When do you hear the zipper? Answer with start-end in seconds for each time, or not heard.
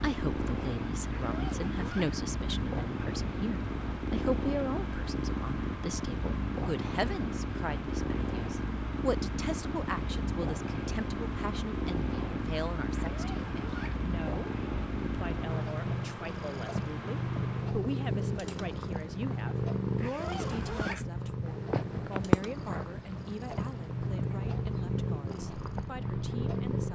1.1-2.1, 13.1-14.0, 19.9-21.1.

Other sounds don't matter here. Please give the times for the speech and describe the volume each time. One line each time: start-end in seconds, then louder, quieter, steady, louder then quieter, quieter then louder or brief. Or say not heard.
0.0-26.9 quieter.